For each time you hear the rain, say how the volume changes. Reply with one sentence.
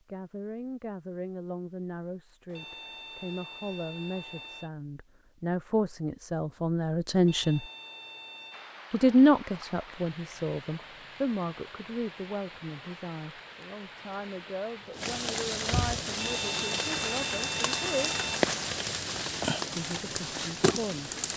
The rain can be heard from 8.5 to 21.3 s, getting louder.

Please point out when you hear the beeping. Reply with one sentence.
The beeping can be heard from 2.5 to 4.7 s, from 7.2 to 8.8 s and from 16.1 to 18.4 s.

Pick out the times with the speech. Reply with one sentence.
The speech can be heard from 0.1 to 7.7 s, from 8.9 to 18.1 s and from 19.7 to 21.1 s.